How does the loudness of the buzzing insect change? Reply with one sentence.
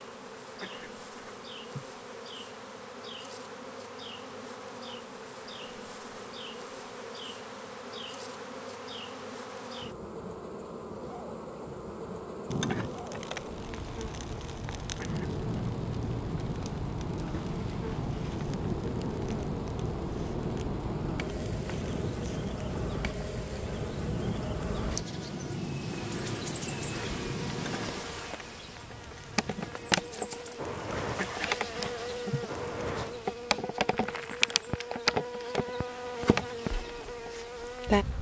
The volume of the buzzing insect goes up.